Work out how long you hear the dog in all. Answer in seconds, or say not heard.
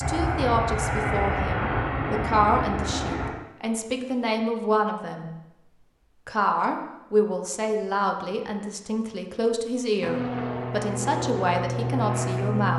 not heard.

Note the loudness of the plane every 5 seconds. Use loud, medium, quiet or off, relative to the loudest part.
loud, off, loud.